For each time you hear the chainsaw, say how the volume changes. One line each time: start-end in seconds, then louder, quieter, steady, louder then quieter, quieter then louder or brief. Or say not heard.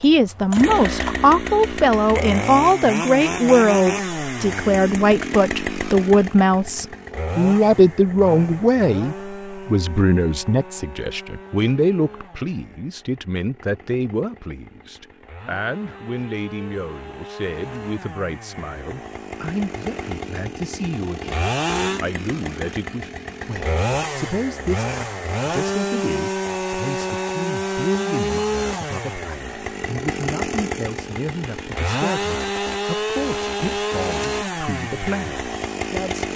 0.0-36.3 quieter then louder.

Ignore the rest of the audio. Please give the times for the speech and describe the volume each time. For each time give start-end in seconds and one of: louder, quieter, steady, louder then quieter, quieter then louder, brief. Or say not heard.
0.0-36.3 quieter.